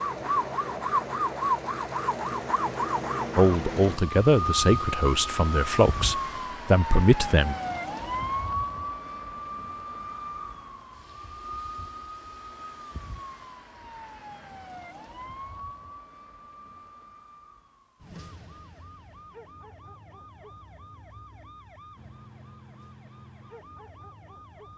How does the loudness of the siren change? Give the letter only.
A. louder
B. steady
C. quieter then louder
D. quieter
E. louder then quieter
D.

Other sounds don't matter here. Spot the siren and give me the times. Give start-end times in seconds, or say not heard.
0.0-24.7.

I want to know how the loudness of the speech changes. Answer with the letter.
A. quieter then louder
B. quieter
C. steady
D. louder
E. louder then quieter
A.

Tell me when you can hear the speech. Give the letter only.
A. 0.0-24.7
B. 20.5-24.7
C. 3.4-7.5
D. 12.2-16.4
C.